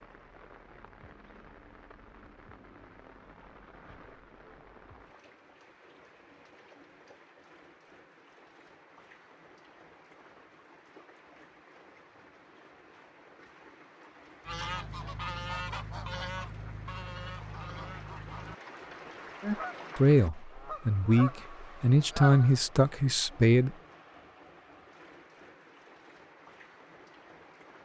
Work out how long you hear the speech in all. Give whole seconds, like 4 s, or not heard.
4 s.